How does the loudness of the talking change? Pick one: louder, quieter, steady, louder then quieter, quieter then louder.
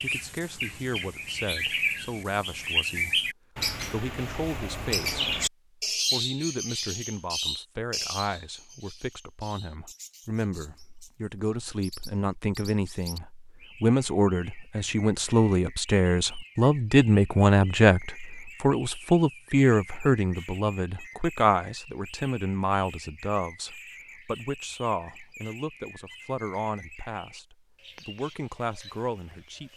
louder then quieter.